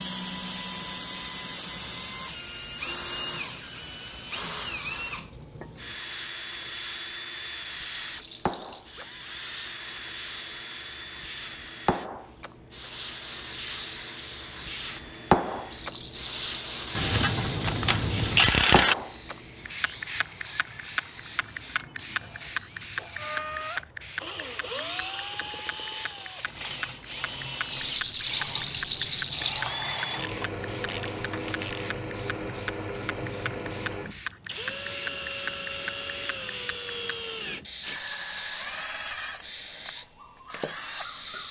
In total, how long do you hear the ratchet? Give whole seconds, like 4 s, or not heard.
4 s.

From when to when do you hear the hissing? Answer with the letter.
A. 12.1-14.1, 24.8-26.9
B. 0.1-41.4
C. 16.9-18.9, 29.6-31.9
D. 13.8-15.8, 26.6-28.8
B.